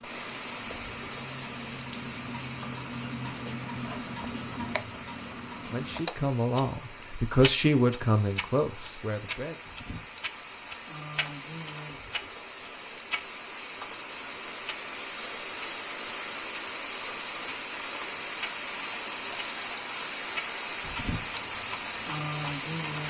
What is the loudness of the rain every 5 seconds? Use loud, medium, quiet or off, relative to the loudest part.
medium, quiet, medium, loud, loud.